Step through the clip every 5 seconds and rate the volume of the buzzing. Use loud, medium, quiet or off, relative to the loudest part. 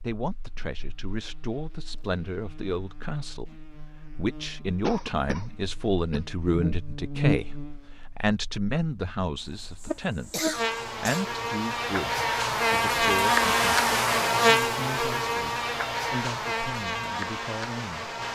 quiet, medium, loud, medium.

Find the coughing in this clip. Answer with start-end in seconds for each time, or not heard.
4.8-6.2, 9.3-11.2.